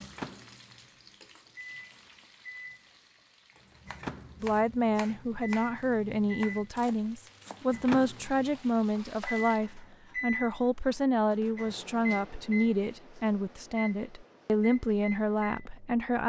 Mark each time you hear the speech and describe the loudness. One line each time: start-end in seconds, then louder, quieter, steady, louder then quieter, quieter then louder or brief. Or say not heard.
4.4-16.2 steady.